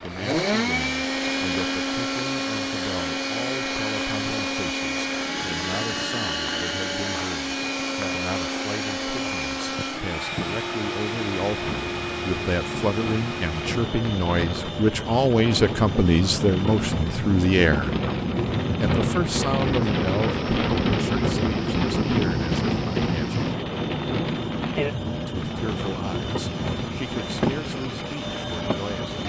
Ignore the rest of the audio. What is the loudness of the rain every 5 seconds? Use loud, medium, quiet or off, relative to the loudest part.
quiet, quiet, medium, loud, loud, medium.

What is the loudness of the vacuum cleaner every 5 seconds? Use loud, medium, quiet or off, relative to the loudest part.
loud, loud, medium, medium, quiet, medium.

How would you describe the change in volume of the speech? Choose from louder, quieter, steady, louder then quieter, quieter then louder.
louder then quieter.